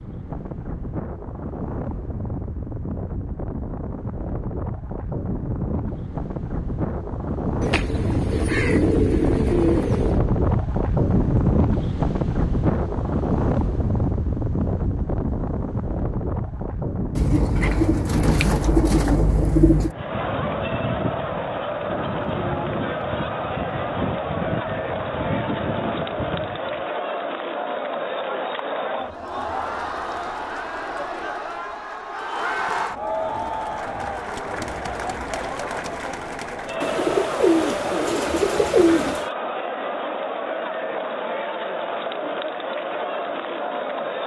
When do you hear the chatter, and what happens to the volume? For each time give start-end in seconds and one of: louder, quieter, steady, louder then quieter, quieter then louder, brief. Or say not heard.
19.9-44.2 steady.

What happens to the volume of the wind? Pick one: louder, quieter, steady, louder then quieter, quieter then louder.
louder then quieter.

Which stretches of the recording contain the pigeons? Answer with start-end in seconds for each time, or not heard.
7.6-10.2, 17.1-19.9, 36.8-39.3.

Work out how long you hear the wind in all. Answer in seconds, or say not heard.
27 s.